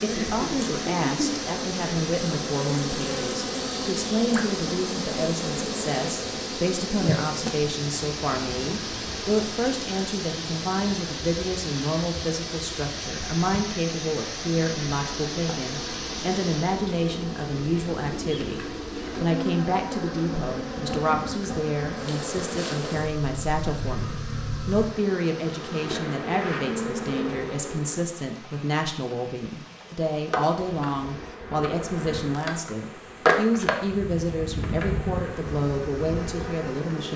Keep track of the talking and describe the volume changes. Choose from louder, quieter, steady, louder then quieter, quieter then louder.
steady.